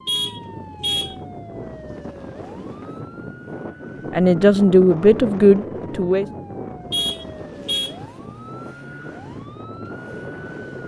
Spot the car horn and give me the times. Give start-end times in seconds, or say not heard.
0.1-1.1, 6.9-8.0.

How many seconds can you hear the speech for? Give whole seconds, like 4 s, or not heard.
2 s.